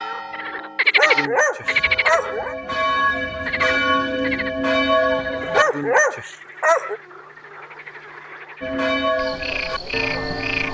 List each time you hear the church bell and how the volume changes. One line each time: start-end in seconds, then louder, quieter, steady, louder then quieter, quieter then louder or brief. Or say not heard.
0.0-5.7 louder
8.6-10.6 brief.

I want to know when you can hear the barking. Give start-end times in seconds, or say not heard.
0.8-2.5, 5.4-7.0.